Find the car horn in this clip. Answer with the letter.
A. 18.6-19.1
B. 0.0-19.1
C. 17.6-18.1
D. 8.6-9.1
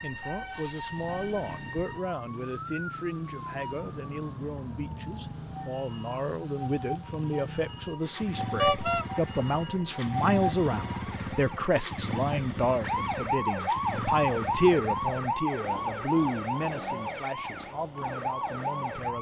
D.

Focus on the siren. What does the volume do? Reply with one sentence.
The volume of the siren goes up.